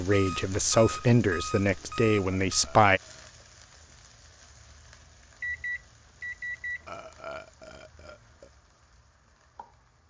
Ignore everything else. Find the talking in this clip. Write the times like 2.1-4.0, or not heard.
0.0-3.0.